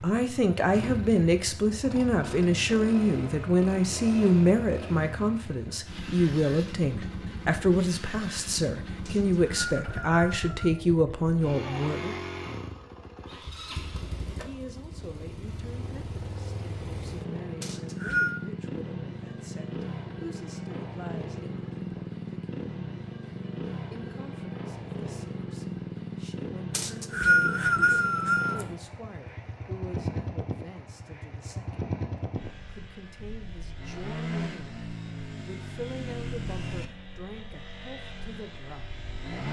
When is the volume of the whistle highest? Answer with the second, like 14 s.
27 s.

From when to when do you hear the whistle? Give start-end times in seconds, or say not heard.
9.1-10.5, 17.6-18.4, 26.7-28.6.